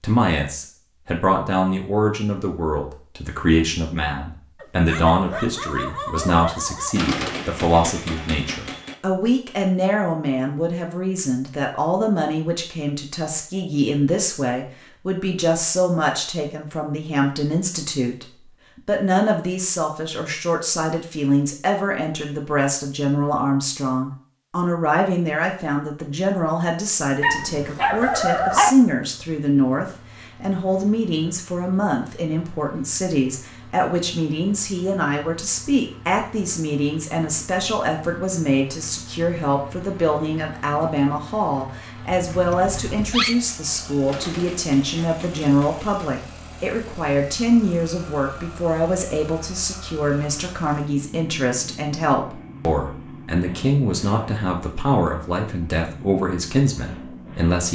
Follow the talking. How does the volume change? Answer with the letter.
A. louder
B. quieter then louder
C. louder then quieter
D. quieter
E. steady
E.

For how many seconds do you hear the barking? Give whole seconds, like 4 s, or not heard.
5 s.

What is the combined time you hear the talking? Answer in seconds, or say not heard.
58 s.